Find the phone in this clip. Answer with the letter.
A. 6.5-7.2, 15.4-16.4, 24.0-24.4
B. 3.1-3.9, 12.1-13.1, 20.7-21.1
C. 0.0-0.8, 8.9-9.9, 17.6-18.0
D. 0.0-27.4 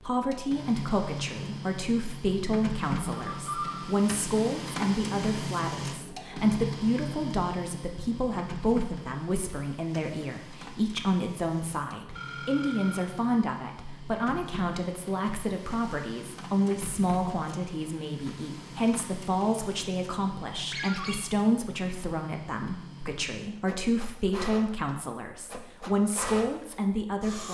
B.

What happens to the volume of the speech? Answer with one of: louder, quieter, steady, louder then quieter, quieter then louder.
steady.